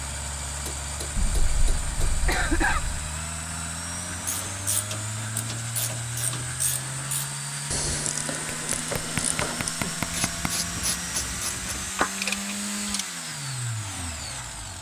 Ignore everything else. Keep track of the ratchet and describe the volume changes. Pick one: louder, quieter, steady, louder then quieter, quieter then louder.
louder.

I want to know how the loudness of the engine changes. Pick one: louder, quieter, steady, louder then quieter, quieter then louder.
steady.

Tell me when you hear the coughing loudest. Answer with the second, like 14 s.
3 s.